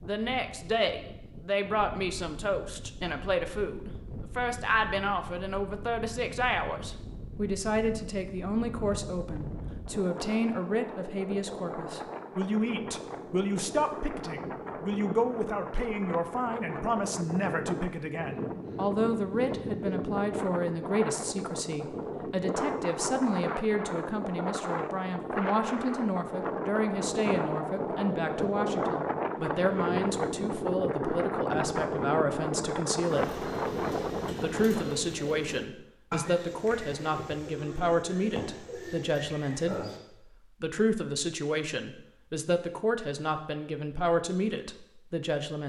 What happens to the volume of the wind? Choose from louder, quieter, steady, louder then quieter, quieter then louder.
louder.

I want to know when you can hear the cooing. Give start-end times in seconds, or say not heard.
33.0-40.0.